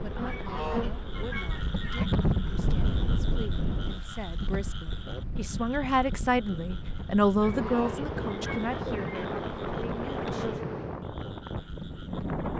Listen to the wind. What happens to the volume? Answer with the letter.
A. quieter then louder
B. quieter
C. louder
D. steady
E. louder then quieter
A.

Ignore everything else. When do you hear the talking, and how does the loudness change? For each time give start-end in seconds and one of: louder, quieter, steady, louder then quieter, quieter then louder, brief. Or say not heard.
0.0-10.6 louder then quieter.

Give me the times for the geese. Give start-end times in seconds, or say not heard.
0.2-2.1, 7.4-9.2.